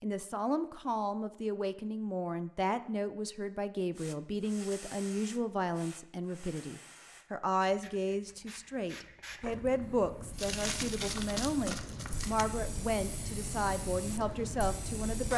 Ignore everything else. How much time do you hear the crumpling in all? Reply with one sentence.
The crumpling can be heard for 2 seconds in total.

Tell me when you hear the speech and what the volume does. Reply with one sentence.
The speech can be heard from 0.0 to 15.3 s, at a steady volume.